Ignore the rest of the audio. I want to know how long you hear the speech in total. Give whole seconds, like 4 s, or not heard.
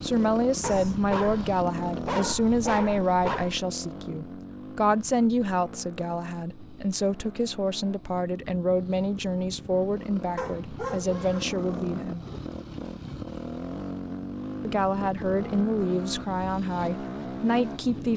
16 s.